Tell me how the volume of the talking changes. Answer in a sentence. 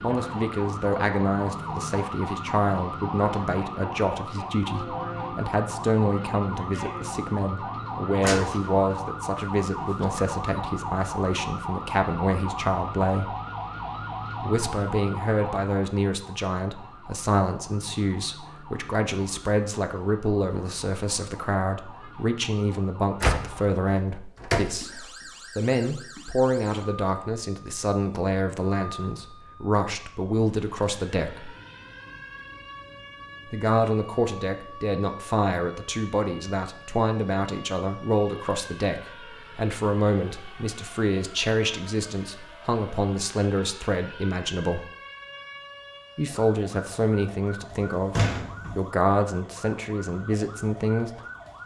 The loudness of the talking stays about the same.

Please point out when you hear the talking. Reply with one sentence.
You can hear the talking from 0.0 to 13.3 s, from 14.4 to 31.6 s, from 33.5 to 44.9 s and from 46.1 to 51.2 s.